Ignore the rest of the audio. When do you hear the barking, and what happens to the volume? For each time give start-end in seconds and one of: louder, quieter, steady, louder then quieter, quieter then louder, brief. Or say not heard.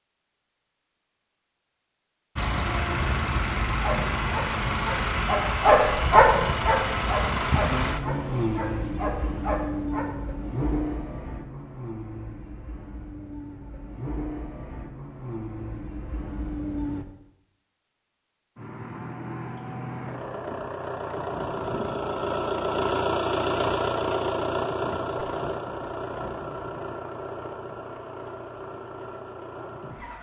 3.8-10.1 louder then quieter.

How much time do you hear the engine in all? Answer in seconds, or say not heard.
26 s.